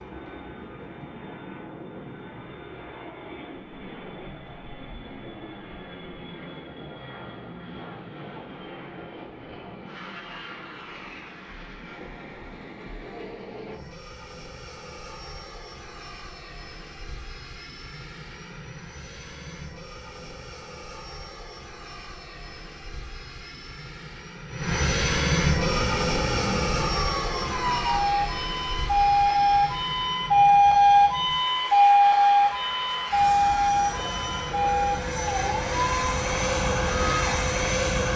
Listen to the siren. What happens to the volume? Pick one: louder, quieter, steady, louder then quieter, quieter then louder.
louder then quieter.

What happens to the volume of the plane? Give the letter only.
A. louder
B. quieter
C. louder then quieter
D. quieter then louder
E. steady
A.